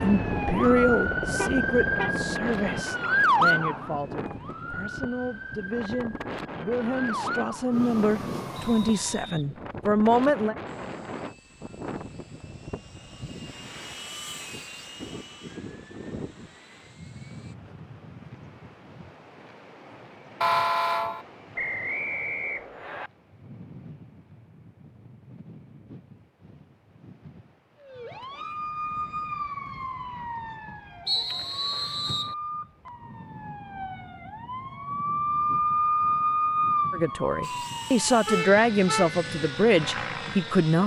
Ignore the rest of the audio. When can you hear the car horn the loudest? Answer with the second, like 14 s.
21 s.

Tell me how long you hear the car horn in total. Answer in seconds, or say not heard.
3 s.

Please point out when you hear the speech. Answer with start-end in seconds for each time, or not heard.
0.0-10.6, 36.9-40.8.